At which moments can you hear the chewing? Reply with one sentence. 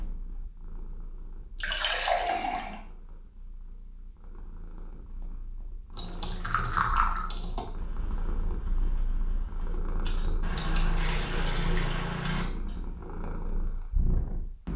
You can't hear the chewing here.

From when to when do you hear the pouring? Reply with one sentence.
You can hear the pouring from 1.6 to 2.8 s, from 5.9 to 7.2 s and from 10.4 to 12.4 s.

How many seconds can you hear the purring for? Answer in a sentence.
You can hear the purring for 15 seconds altogether.